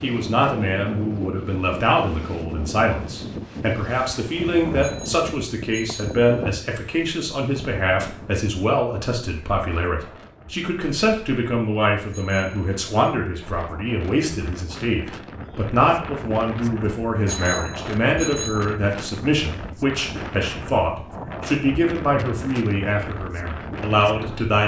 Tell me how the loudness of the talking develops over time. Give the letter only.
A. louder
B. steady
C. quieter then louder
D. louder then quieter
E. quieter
B.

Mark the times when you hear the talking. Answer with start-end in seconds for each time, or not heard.
0.0-24.6.